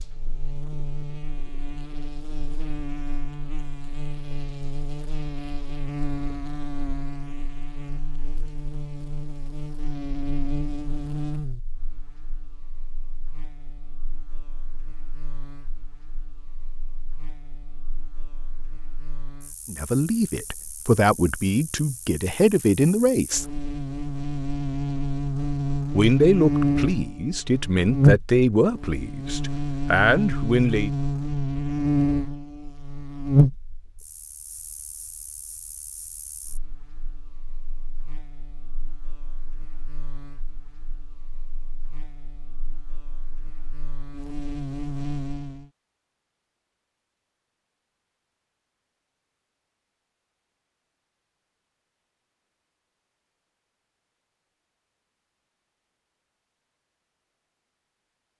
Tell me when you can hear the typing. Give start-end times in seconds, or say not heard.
not heard.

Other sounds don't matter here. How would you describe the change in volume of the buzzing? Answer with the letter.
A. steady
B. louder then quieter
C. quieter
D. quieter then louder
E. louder
B.